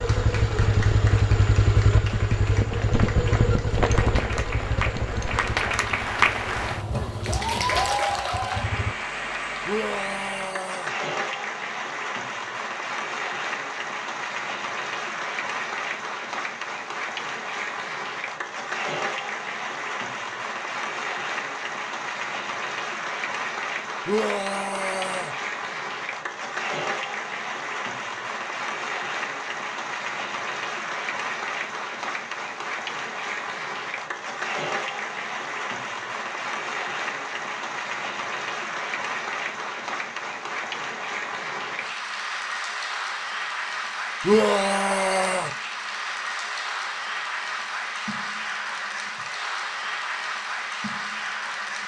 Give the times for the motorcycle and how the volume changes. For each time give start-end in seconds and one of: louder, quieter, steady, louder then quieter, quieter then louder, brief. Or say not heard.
0.0-8.9 quieter.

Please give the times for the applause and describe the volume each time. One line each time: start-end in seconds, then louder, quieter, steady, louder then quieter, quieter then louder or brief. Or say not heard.
0.0-51.8 steady.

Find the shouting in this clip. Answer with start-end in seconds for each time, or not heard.
9.7-10.9, 24.1-25.4, 44.2-45.5.